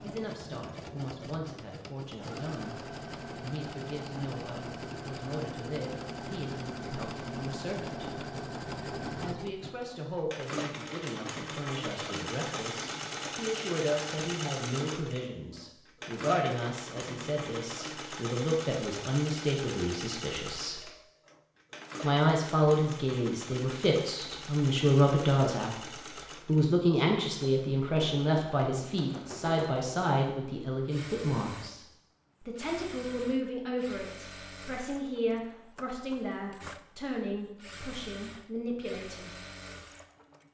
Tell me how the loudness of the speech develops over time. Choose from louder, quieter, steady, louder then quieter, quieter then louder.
louder then quieter.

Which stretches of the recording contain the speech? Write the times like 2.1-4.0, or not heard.
0.0-8.2, 9.2-20.9, 22.0-25.8, 26.4-39.4.